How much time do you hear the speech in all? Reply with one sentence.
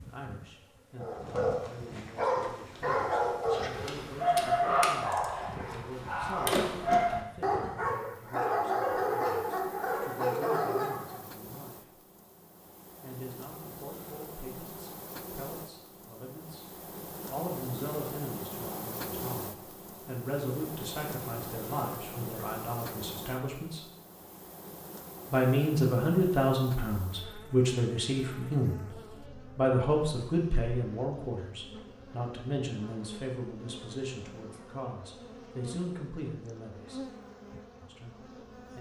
You can hear the speech for 35 seconds altogether.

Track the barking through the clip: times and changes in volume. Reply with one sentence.
The barking can be heard from 0.9 to 11.2 s, at a steady volume.